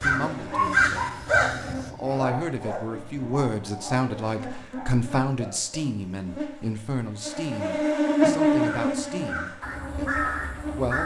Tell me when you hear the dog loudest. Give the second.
1 s.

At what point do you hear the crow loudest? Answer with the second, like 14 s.
1 s.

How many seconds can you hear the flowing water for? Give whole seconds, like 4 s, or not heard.
not heard.